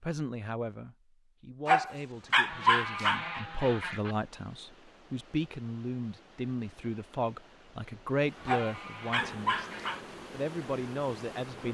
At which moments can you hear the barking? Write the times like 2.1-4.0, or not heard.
1.6-3.2, 8.4-10.0.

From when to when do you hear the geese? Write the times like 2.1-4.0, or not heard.
2.5-4.2, 8.3-10.0.